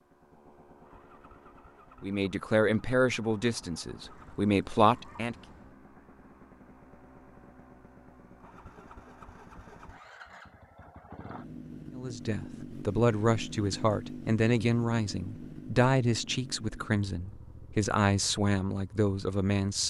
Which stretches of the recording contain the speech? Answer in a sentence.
The speech can be heard from 2.0 to 5.3 s and from 11.9 to 19.8 s.